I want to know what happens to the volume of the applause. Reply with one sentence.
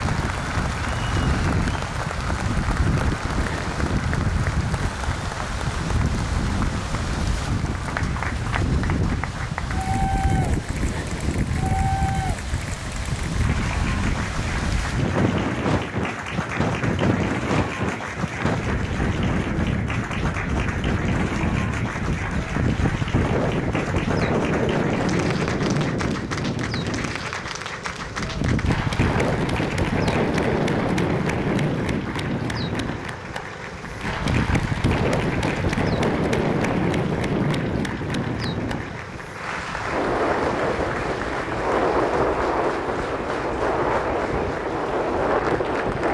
The volume of the applause stays about the same.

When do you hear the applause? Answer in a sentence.
The applause can be heard from 0.0 to 46.0 s.